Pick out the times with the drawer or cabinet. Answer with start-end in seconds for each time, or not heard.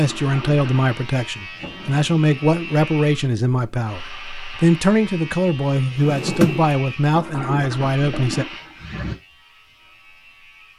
1.4-2.3, 6.0-6.7.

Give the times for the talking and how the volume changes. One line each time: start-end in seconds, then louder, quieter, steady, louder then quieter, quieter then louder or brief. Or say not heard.
0.0-8.4 steady.